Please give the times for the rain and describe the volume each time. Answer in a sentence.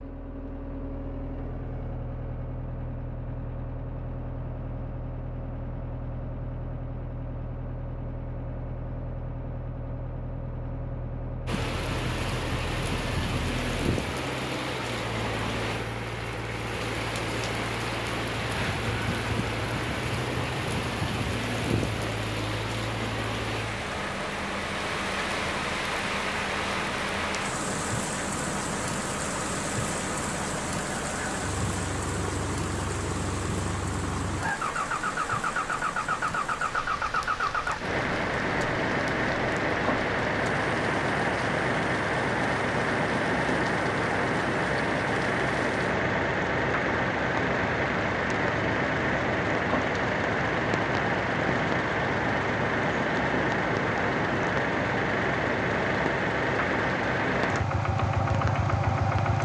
You can hear the rain from 11.4 to 59.4 s, getting quieter.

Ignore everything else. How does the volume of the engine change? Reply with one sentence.
The loudness of the engine goes up.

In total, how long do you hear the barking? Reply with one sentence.
You can't hear the barking here.